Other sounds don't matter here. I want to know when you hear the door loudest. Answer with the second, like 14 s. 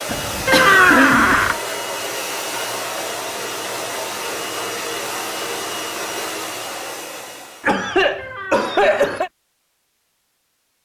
1 s.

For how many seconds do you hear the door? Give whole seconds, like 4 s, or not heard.
2 s.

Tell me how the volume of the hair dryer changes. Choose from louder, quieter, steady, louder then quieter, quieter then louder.
steady.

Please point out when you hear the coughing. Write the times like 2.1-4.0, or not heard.
0.1-1.6, 7.6-9.3.